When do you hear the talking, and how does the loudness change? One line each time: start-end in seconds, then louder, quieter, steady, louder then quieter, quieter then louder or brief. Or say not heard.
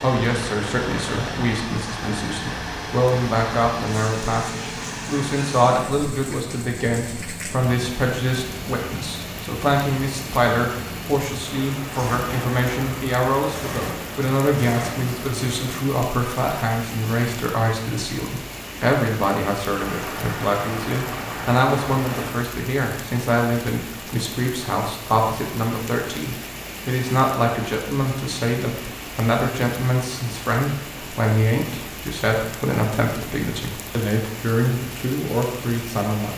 0.0-36.3 steady.